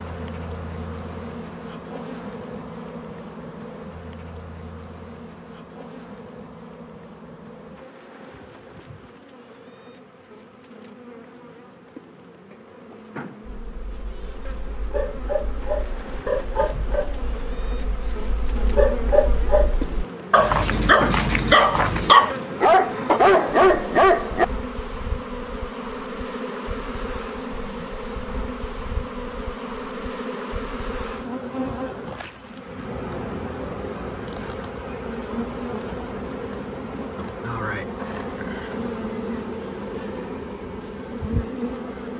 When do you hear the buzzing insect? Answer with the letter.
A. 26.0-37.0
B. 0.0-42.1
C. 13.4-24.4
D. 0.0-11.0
B.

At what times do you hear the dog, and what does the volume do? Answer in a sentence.
You can hear the dog from 13.4 to 24.4 s, getting louder.